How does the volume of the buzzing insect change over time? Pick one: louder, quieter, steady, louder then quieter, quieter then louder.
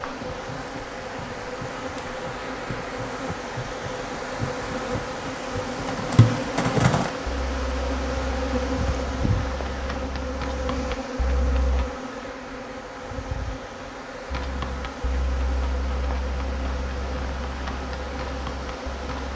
louder then quieter.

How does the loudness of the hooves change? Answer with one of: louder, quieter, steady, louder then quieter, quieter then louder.
louder then quieter.